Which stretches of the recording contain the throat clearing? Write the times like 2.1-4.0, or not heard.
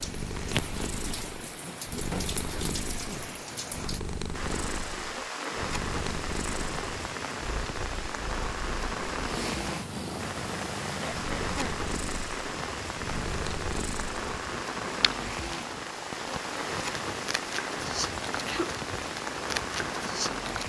1.6-3.3, 11.0-11.8.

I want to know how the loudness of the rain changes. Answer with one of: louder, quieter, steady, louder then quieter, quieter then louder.
steady.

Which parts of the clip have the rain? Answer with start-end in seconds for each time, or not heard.
0.0-20.6.